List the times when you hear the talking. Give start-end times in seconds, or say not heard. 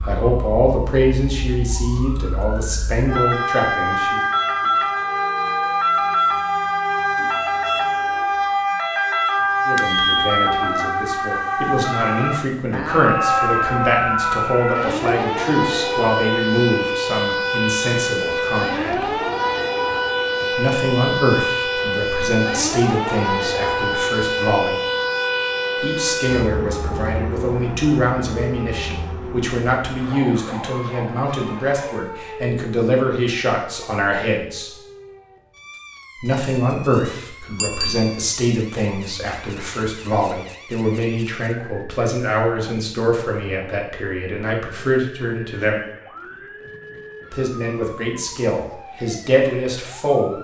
0.0-4.2, 9.7-19.1, 20.6-24.8, 25.8-34.7, 36.1-45.8, 47.3-50.3.